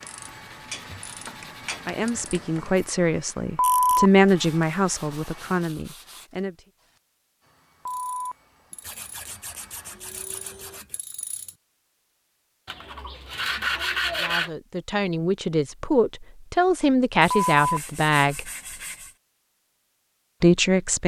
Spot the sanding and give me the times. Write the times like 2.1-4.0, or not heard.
0.1-2.2, 4.2-6.3, 8.8-11.0, 12.7-14.5, 17.2-19.1.